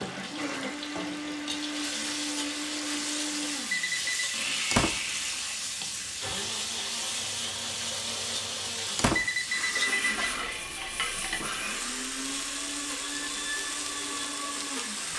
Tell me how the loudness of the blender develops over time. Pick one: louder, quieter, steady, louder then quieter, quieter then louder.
steady.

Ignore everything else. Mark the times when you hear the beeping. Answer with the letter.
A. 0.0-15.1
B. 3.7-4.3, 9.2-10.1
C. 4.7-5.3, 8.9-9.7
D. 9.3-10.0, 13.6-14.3
B.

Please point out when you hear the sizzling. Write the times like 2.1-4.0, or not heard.
0.0-15.1.